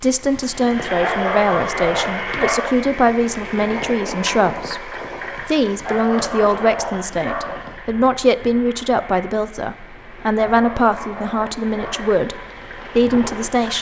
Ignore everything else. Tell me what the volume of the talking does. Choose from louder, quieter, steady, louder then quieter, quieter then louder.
steady.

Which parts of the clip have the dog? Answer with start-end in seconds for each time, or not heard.
1.0-2.7, 5.8-7.5, 10.5-12.1.